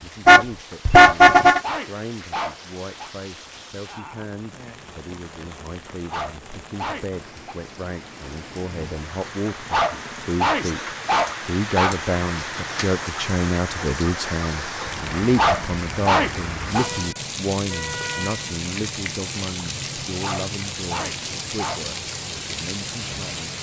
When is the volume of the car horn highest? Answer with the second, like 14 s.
1 s.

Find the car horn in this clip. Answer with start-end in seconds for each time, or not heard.
0.2-1.6, 16.8-18.6.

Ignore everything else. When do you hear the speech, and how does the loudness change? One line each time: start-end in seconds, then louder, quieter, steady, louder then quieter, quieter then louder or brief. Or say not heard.
0.0-23.5 louder then quieter.